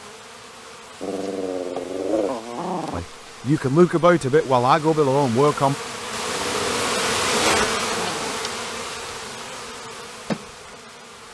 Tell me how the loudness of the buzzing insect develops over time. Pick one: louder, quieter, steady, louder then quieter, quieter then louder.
louder then quieter.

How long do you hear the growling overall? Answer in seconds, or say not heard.
4 s.